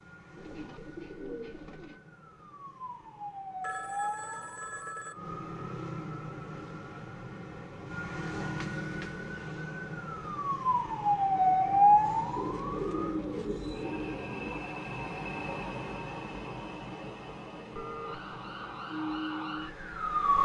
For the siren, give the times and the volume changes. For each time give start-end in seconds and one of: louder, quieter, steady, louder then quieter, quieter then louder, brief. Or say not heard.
0.0-13.2 louder
18.0-20.4 brief.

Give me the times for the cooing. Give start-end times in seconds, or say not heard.
0.3-2.0, 12.3-14.7.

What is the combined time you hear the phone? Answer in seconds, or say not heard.
3 s.